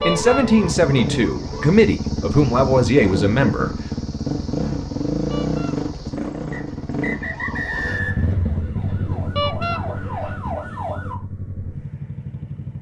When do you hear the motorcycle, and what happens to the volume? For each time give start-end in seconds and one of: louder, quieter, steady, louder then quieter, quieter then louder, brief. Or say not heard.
0.0-12.7 quieter.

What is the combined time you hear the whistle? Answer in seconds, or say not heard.
2 s.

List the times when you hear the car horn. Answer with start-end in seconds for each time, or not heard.
0.0-0.5, 5.3-5.8, 9.3-9.8.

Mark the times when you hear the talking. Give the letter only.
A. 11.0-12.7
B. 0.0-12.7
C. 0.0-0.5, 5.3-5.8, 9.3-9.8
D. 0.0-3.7
D.